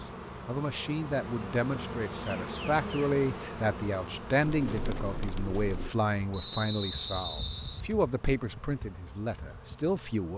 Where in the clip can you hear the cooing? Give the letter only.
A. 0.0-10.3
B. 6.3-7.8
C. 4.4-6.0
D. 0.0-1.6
C.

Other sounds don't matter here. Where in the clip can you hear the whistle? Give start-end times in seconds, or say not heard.
6.3-7.8.